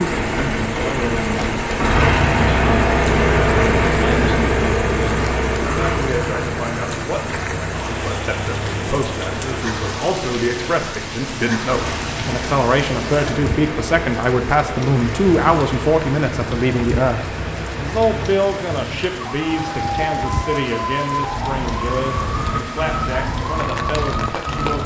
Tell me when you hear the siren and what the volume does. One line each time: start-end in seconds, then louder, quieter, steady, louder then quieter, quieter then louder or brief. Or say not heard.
19.1-24.8 steady.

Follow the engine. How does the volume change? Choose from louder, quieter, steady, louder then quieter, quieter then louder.
quieter.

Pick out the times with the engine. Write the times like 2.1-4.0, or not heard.
0.0-18.3.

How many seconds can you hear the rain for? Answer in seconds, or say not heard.
25 s.